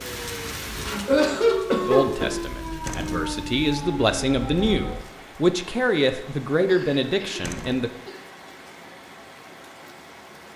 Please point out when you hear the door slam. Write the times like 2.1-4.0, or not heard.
2.9-3.3, 7.4-7.8.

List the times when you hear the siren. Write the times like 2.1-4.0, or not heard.
0.0-5.2.